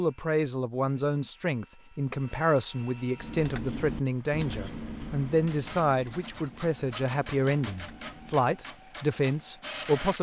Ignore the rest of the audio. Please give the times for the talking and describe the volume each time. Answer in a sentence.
The talking can be heard from 0.0 to 10.1 s, at a steady volume.